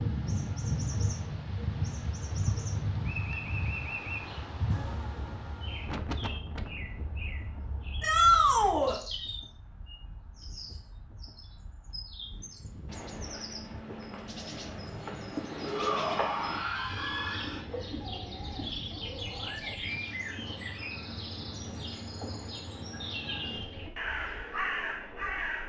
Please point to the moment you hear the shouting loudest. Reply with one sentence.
The loudest moment of the shouting is at 8 seconds.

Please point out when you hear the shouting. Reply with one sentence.
The shouting can be heard from 8.0 to 9.0 s and from 15.7 to 17.6 s.